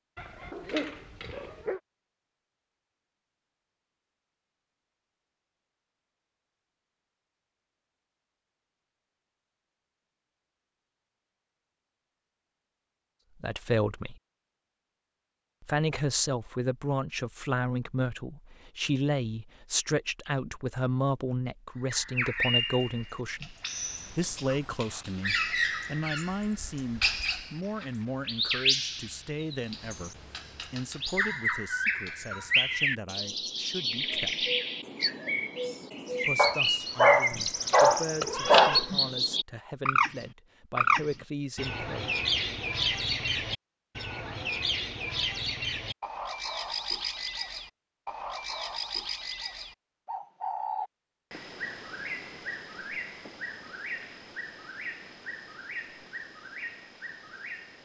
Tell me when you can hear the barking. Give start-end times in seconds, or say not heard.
0.1-1.8, 36.4-38.8.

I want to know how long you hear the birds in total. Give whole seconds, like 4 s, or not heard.
36 s.